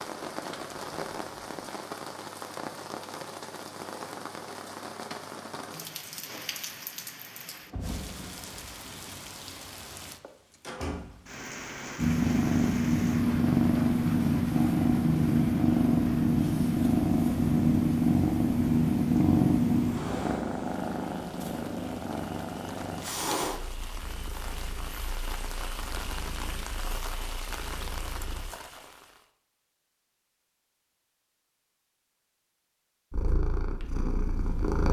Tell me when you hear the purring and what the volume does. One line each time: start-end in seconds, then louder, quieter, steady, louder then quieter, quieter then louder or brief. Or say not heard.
11.9-28.4 quieter
33.1-34.8 brief.